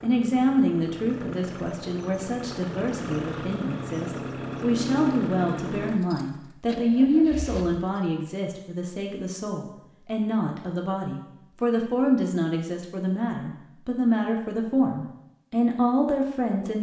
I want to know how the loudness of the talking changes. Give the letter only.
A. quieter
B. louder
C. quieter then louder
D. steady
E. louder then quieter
D.